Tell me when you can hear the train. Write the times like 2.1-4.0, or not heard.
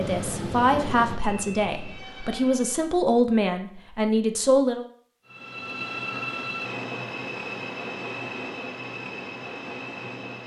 0.0-3.0, 5.2-10.4.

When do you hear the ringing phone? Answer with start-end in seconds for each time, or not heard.
not heard.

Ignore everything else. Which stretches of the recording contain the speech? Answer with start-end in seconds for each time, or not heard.
0.0-4.8.